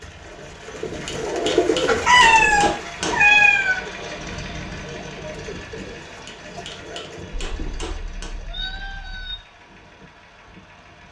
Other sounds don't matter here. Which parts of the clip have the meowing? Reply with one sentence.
You can hear the meowing from 2.0 to 3.8 s and from 7.3 to 9.3 s.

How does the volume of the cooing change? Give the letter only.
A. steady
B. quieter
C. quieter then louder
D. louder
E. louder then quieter
B.